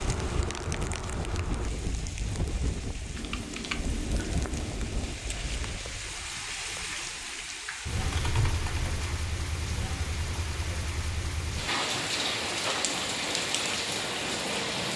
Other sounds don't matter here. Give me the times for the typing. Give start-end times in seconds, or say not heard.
3.1-5.2, 8.0-9.2.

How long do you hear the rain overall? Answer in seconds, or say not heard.
15 s.